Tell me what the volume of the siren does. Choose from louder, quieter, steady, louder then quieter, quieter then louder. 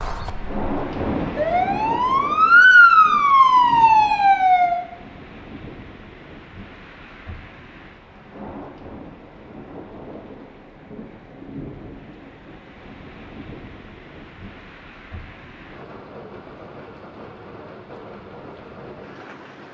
louder.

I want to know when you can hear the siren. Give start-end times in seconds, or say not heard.
0.0-4.8.